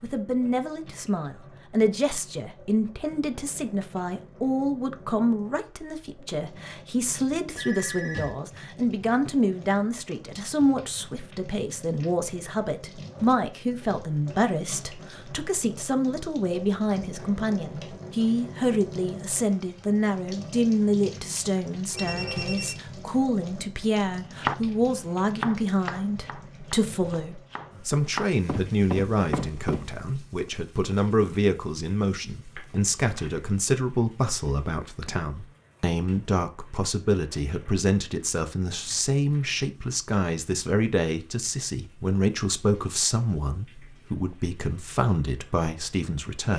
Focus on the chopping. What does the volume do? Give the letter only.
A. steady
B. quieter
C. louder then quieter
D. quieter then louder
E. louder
D.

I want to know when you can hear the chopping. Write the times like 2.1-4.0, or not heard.
24.4-29.9.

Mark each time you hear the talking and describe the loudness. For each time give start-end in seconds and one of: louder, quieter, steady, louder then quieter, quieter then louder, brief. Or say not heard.
0.0-46.5 steady.